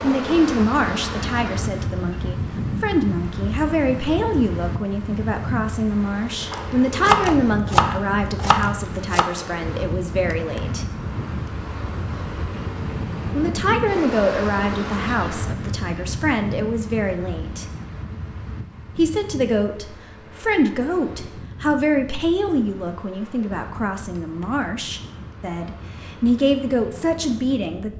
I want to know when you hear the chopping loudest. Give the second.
7 s.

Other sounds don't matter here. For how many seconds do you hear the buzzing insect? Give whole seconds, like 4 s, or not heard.
not heard.